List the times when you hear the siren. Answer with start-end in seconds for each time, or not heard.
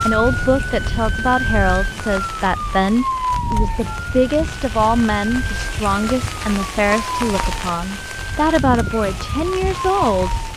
0.0-10.5.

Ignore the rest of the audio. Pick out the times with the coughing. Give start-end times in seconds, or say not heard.
not heard.